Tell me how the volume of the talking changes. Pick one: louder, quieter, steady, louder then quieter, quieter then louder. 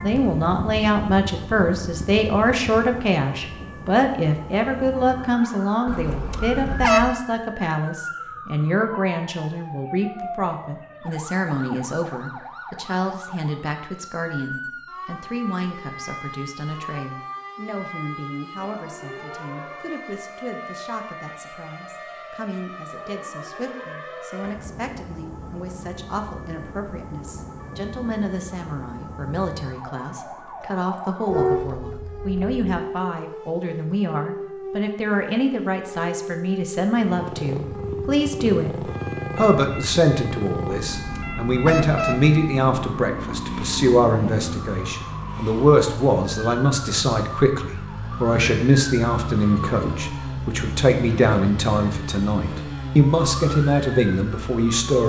quieter then louder.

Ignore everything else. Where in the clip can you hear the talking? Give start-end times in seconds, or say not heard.
0.0-55.0.